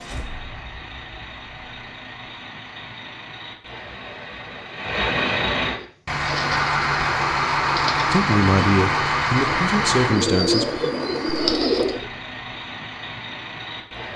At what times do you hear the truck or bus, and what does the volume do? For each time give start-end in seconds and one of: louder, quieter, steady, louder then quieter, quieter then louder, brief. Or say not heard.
0.0-14.1 louder then quieter.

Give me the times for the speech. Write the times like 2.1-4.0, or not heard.
8.1-10.9.